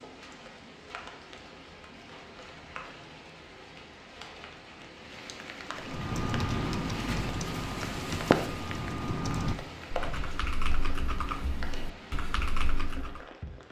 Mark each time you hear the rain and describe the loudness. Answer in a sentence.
You can hear the rain from 0.0 to 13.6 s, getting louder then quieter.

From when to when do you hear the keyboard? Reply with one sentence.
The keyboard can be heard from 5.8 to 13.2 s.